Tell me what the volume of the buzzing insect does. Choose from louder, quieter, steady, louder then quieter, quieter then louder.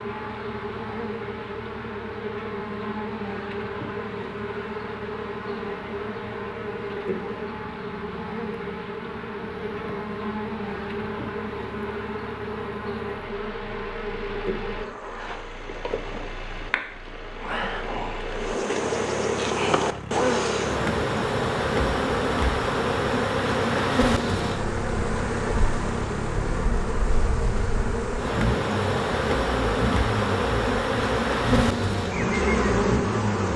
louder.